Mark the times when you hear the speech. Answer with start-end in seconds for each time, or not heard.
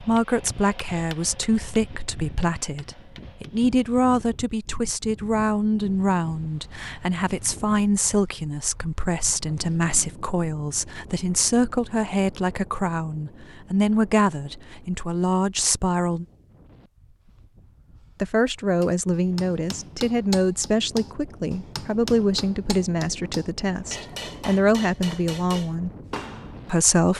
0.0-16.2, 18.2-25.9, 26.6-27.1.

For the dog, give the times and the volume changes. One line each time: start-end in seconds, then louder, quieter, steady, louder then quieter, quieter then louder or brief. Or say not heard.
not heard.